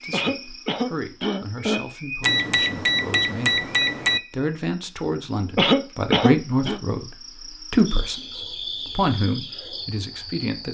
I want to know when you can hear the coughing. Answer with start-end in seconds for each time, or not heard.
0.1-1.9, 5.5-6.8.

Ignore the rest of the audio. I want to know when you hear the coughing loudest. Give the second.
6 s.